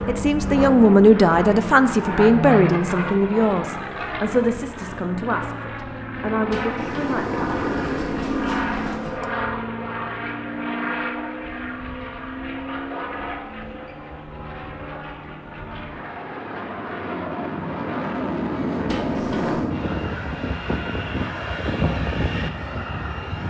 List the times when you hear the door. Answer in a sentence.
You can hear the door from 6.5 to 9.2 s and from 18.9 to 19.8 s.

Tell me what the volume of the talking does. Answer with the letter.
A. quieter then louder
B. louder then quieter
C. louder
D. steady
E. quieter
E.